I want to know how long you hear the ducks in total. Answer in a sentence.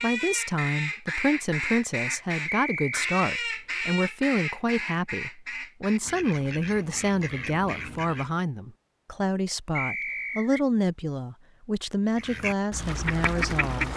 You can hear the ducks for 10 seconds altogether.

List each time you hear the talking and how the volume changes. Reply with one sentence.
The talking can be heard from 0.0 to 13.9 s, at a steady volume.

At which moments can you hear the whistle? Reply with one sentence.
You can hear the whistle from 2.5 to 3.0 s and from 9.8 to 10.6 s.